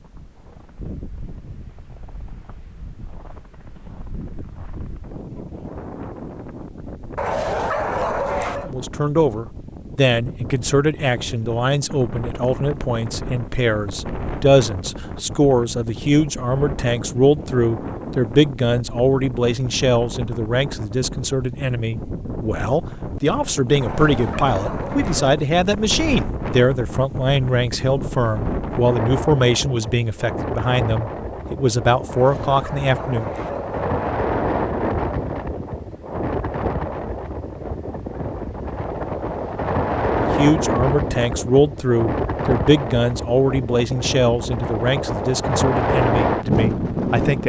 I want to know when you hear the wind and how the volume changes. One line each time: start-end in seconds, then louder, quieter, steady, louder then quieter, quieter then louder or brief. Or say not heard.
0.0-47.4 louder.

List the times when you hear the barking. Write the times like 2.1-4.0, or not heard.
7.2-8.7, 23.8-25.4, 32.1-33.9.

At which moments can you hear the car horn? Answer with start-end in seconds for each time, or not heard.
not heard.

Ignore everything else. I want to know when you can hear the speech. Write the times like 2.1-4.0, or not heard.
8.6-33.3, 40.2-47.4.